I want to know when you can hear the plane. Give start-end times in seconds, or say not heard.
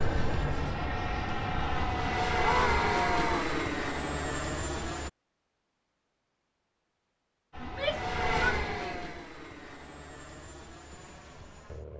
0.0-5.1, 7.5-11.9.